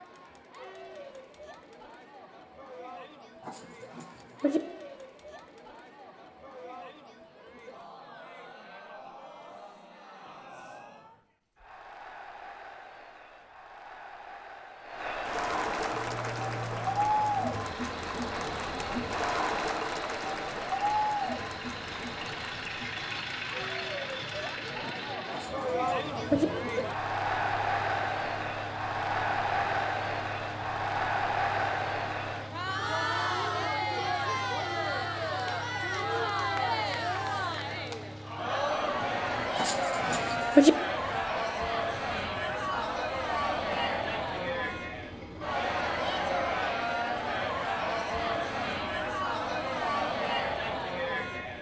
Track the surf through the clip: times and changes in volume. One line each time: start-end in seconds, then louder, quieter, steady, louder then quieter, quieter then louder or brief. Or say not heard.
not heard.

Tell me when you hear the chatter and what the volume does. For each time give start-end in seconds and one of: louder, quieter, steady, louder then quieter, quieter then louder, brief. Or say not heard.
0.0-51.5 louder.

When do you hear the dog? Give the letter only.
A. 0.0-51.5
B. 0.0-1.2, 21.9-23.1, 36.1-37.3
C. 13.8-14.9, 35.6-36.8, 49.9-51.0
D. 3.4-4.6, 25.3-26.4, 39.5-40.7
D.